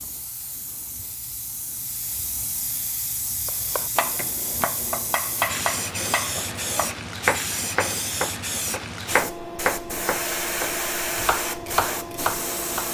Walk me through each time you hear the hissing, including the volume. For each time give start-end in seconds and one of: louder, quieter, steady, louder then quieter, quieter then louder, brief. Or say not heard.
0.0-12.8 louder.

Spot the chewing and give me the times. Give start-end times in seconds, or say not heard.
not heard.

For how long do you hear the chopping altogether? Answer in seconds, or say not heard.
9 s.